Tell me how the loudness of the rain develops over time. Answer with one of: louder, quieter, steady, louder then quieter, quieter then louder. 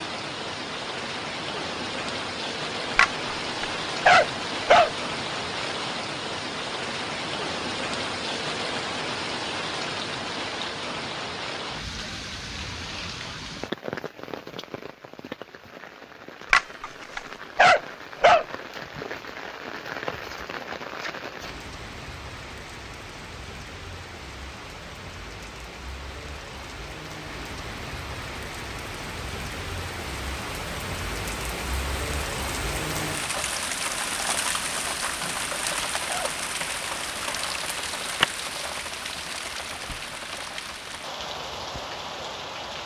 quieter then louder.